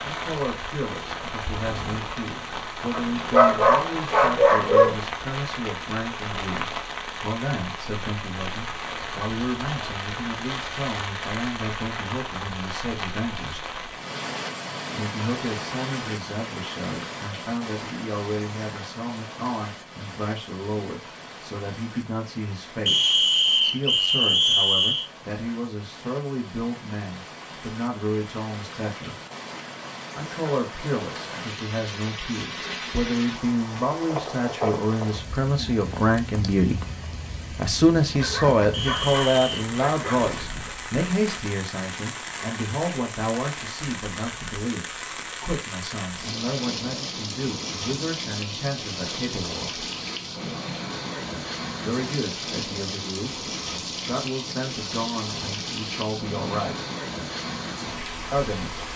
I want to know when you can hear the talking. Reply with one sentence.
You can hear the talking from 0.0 to 13.7 s, from 14.9 to 29.1 s, from 30.1 to 36.8 s, from 37.5 to 49.9 s, from 51.8 to 56.8 s and from 58.3 to 58.9 s.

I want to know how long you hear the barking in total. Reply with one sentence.
The barking can be heard for 5 seconds in total.